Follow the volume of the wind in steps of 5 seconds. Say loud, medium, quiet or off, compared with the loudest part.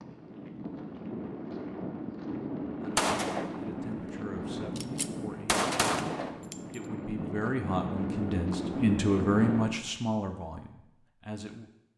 loud, loud, off.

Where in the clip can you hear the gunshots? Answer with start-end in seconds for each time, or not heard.
3.0-3.6, 4.8-6.8.